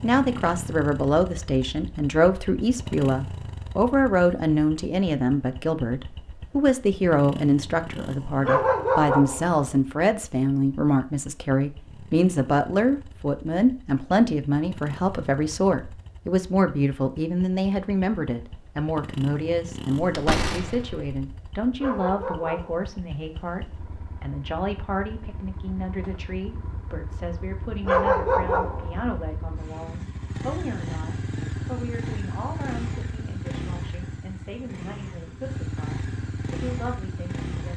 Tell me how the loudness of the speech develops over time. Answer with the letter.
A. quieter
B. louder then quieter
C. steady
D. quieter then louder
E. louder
A.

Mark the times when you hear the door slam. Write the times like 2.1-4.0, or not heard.
20.0-21.1.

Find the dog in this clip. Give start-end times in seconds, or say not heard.
8.4-9.6, 21.8-22.9, 27.9-29.0.